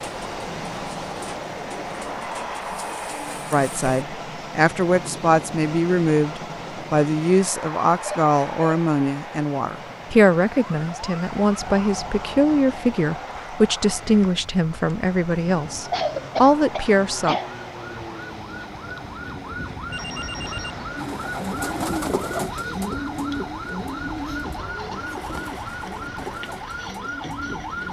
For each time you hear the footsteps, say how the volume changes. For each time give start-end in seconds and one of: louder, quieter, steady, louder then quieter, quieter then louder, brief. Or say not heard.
not heard.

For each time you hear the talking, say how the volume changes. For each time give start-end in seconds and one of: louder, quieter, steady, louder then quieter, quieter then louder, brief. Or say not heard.
3.5-17.4 steady.